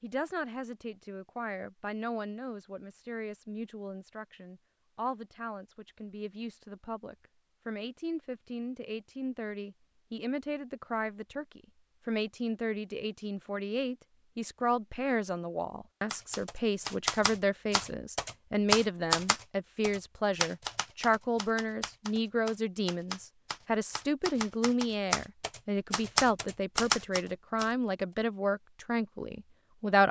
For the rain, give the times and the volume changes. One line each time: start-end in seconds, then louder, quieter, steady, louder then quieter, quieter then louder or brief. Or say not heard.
not heard.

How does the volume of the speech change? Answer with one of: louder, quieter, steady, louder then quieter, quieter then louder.
louder.